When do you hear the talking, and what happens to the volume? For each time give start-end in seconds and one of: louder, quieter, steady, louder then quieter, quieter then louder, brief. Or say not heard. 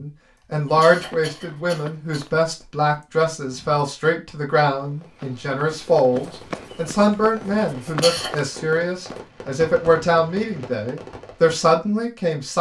0.0-12.5 steady.